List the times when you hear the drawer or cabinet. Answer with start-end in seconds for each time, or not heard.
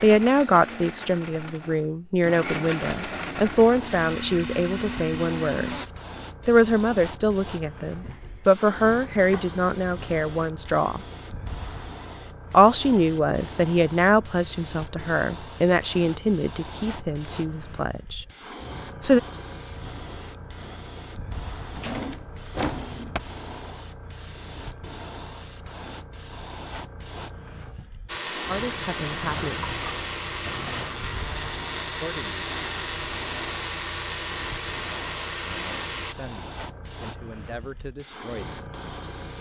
7.9-9.6, 21.7-23.2, 29.1-31.0.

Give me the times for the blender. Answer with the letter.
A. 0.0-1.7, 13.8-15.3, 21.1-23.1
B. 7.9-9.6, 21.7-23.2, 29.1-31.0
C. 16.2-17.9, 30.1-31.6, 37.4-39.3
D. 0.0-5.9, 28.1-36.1
D.